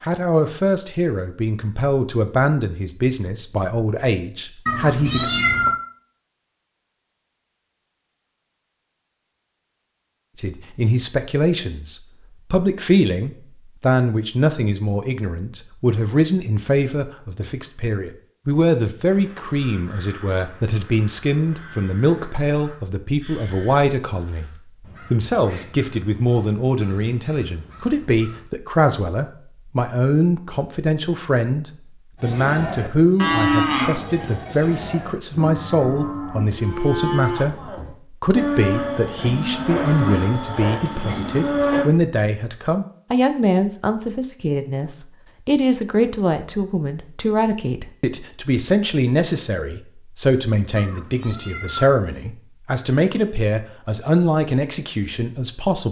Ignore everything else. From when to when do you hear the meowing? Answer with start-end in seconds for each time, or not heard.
4.7-5.8, 50.8-52.0.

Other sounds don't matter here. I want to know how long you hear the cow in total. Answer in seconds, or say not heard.
10 s.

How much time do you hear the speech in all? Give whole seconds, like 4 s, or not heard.
51 s.